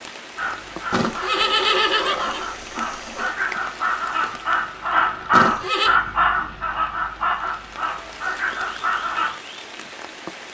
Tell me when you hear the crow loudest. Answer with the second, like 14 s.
5 s.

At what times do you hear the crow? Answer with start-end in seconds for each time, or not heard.
0.3-9.3.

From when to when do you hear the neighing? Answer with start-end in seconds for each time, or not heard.
0.9-3.4, 5.3-6.0.